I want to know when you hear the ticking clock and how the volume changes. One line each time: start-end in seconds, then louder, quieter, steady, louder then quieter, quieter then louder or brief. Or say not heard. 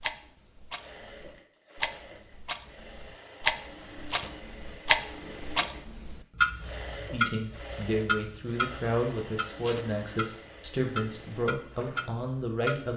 0.0-12.9 louder then quieter.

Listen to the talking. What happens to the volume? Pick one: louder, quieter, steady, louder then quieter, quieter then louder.
steady.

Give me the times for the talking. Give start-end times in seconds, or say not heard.
7.0-12.9.